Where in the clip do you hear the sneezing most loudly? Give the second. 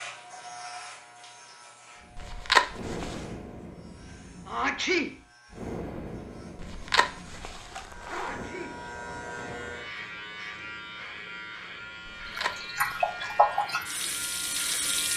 5 s.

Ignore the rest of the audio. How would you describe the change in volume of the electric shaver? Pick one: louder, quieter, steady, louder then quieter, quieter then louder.
quieter then louder.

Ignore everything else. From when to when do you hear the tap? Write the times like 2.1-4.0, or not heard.
12.3-15.1.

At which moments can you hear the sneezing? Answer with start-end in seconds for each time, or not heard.
4.5-5.2, 8.1-8.8.